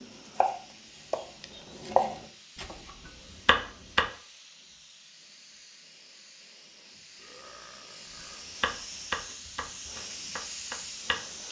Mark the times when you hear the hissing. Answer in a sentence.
The hissing can be heard from 0.0 to 11.4 s.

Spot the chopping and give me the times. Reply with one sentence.
You can hear the chopping from 0.3 to 4.0 s and from 8.6 to 11.4 s.